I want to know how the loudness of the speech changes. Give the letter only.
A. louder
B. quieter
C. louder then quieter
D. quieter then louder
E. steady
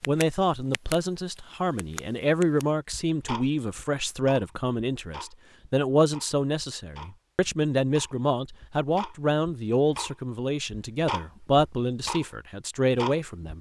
E.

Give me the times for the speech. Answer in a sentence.
The speech can be heard from 0.1 to 13.5 s.